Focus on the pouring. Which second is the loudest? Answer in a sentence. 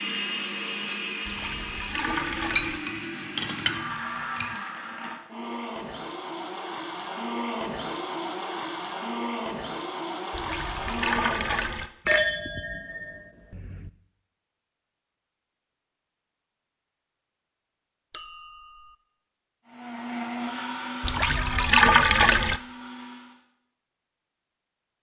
The volume of the pouring peaks at 22 seconds.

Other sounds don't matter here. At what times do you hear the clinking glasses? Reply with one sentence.
The clinking glasses can be heard from 2.5 to 4.6 s, from 12.1 to 13.9 s and from 18.1 to 18.9 s.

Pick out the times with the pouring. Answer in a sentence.
You can hear the pouring from 1.2 to 2.8 s, from 10.3 to 11.9 s and from 21.0 to 22.6 s.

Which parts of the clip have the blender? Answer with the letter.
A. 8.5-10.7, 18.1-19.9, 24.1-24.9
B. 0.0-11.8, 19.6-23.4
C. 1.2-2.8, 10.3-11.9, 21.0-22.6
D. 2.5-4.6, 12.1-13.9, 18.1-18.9
B.